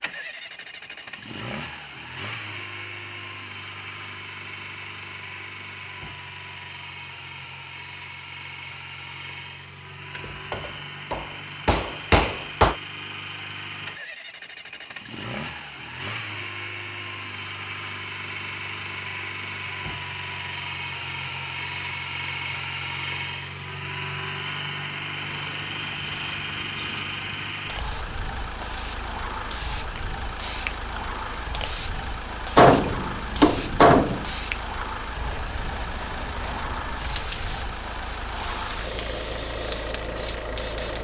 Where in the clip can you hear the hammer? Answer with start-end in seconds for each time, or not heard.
10.2-12.8, 32.5-34.2.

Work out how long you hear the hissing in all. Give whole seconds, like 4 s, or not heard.
16 s.